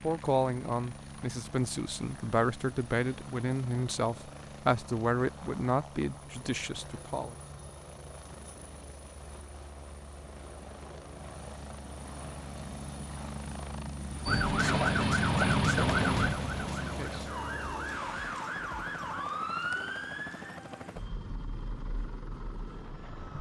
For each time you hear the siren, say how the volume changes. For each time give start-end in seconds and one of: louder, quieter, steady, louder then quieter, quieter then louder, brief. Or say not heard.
14.2-23.3 quieter.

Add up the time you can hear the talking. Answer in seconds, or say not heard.
8 s.